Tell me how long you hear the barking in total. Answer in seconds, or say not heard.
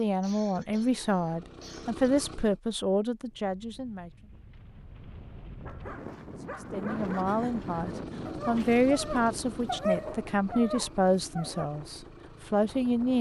6 s.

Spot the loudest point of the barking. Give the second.
10 s.